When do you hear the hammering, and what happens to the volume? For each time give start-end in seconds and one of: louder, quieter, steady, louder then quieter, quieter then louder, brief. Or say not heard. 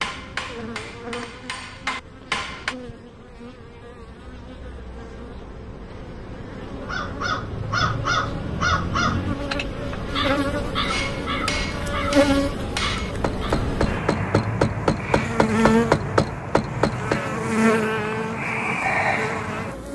0.0-2.8 brief
10.8-17.2 louder.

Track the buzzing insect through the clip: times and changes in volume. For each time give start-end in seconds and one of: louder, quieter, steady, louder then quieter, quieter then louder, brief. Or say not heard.
0.0-19.8 louder.